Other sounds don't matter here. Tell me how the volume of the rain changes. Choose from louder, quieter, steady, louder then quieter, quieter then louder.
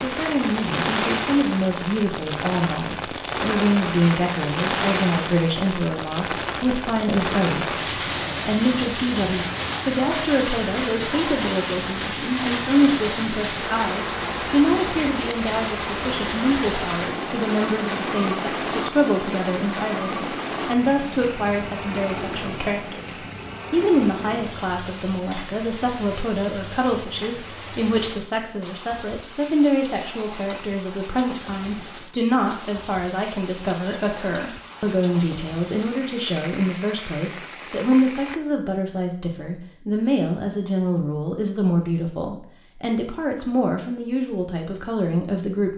quieter.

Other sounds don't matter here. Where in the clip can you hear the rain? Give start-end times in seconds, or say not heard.
0.0-38.4.